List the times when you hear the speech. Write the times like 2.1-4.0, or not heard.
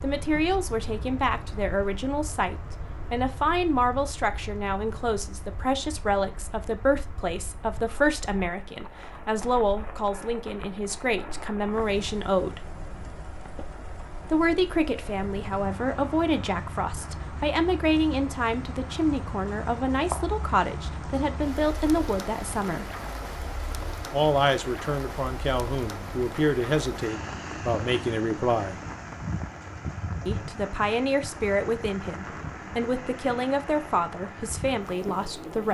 0.0-12.7, 14.2-22.9, 24.1-28.8, 30.2-35.6.